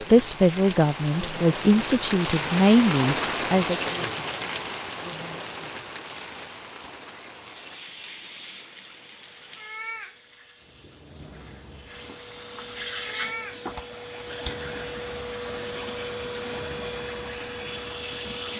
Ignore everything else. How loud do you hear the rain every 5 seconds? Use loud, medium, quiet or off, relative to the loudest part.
loud, medium, quiet, quiet.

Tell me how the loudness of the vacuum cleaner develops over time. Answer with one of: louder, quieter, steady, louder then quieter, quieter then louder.
louder.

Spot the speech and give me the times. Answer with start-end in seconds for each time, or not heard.
0.1-3.8.